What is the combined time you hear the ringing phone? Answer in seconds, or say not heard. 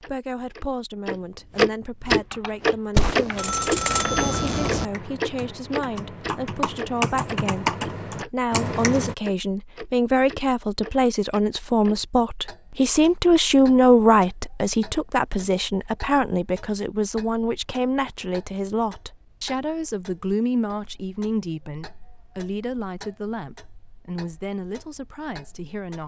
2 s.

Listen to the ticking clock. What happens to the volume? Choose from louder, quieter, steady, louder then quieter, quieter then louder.
quieter.